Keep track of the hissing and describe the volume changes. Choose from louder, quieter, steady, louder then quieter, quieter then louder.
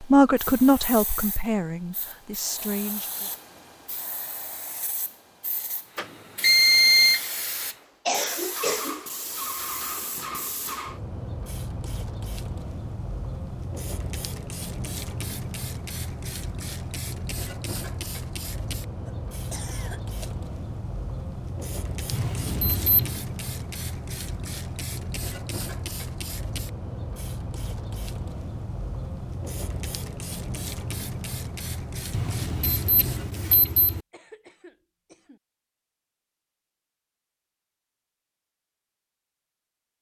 louder.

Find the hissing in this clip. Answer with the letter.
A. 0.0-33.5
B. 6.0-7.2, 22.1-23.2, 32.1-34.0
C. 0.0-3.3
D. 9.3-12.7
A.